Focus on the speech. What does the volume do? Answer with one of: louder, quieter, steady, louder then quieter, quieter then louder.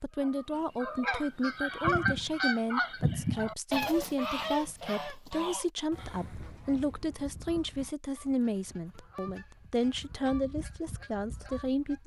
steady.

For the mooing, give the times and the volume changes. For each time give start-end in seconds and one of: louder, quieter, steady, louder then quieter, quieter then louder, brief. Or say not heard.
not heard.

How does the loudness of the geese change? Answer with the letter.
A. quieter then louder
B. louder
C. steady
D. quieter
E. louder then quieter
D.